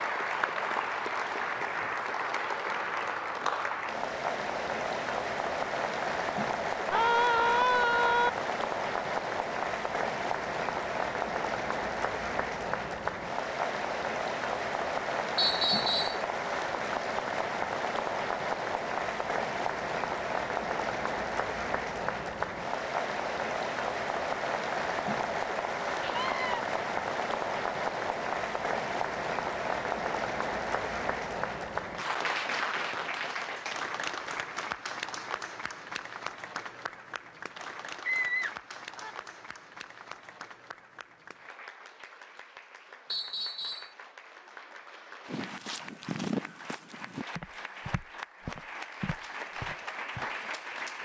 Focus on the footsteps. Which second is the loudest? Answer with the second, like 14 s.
46 s.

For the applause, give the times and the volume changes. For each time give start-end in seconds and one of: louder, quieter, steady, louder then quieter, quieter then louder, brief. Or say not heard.
0.0-50.9 quieter.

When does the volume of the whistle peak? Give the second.
16 s.